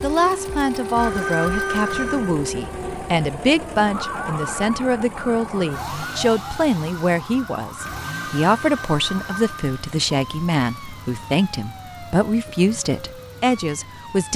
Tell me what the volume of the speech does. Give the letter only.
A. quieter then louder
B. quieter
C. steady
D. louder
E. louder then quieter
C.